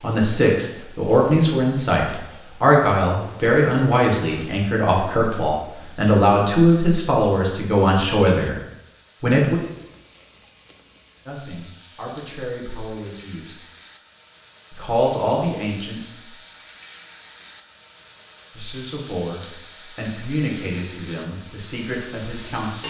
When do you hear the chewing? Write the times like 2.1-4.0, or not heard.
not heard.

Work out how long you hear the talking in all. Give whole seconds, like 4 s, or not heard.
17 s.